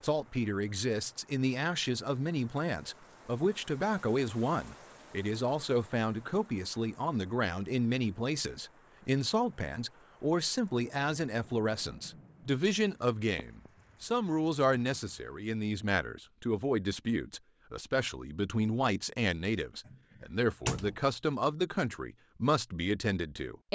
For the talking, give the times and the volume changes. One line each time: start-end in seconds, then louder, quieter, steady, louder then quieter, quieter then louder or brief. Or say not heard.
0.0-23.6 steady.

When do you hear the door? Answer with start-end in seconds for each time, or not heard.
19.9-21.0.